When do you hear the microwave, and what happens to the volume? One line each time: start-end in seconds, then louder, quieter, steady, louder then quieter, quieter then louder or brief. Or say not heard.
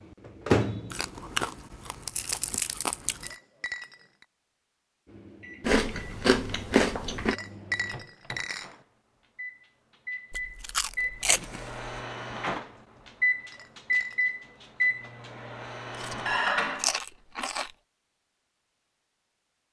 0.0-1.6 brief
5.0-16.9 louder.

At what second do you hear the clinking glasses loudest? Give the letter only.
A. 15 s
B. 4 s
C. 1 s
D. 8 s
D.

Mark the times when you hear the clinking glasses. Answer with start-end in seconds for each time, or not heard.
3.2-4.2, 7.3-8.8, 13.5-14.3.